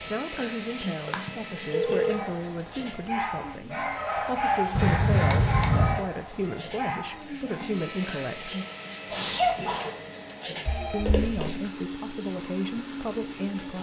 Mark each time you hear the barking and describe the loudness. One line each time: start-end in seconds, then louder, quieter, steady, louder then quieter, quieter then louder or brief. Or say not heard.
1.8-7.8 louder then quieter.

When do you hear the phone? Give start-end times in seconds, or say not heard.
1.1-2.3, 4.8-6.0, 10.7-11.6.